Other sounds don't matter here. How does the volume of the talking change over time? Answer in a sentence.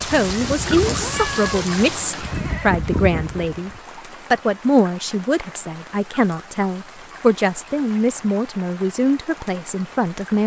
The loudness of the talking stays about the same.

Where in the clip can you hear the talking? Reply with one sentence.
You can hear the talking from 0.0 to 3.7 s and from 4.3 to 10.4 s.